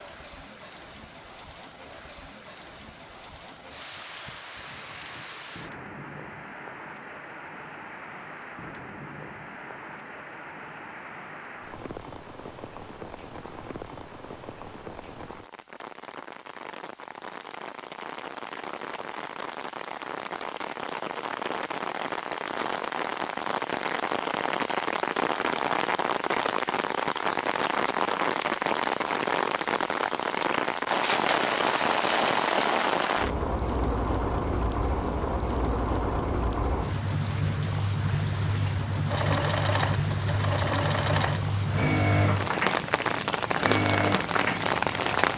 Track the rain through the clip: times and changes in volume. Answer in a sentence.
You can hear the rain from 0.0 to 45.3 s, getting louder.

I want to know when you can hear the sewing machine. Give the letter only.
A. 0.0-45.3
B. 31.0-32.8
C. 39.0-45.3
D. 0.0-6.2
C.